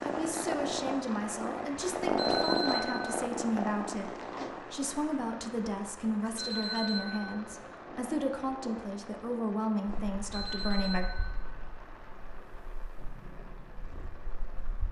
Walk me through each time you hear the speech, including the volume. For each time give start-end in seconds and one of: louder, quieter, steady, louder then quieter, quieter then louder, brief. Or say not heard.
0.0-11.1 steady.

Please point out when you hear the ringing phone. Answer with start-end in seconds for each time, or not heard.
2.1-3.2, 6.3-7.5, 10.3-11.6.